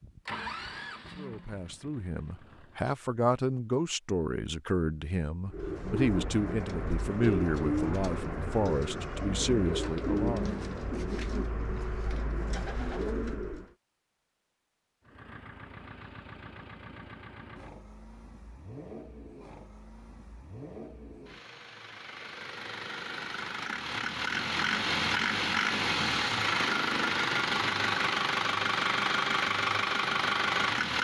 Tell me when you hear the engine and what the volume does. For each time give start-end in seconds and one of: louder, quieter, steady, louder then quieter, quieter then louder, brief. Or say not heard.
0.0-2.9 brief
15.0-30.9 louder.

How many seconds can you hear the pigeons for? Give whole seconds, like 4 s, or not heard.
8 s.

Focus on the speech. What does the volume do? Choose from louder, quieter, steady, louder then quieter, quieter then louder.
steady.